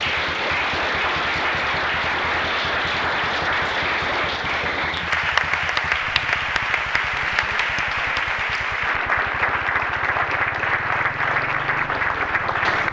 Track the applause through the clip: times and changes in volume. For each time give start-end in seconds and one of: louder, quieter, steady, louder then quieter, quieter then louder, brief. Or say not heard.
0.0-12.8 steady.